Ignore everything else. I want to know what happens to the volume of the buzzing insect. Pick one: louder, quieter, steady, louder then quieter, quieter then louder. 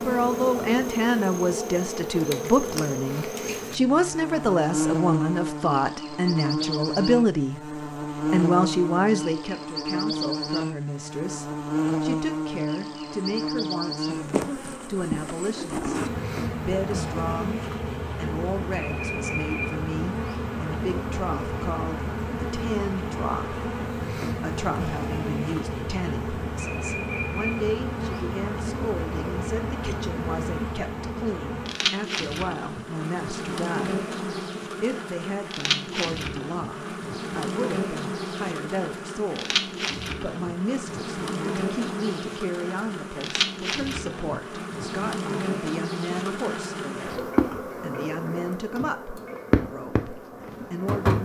steady.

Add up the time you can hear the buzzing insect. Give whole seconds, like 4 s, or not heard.
51 s.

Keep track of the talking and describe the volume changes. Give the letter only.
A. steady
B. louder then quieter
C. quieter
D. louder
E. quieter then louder
C.